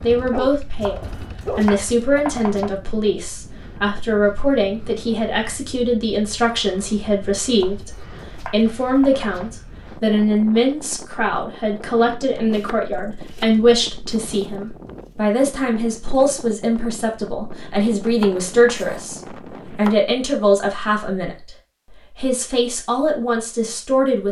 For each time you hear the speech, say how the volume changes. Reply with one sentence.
You can hear the speech from 0.0 to 21.4 s, at a steady volume; and briefly from 22.1 to 24.2 s.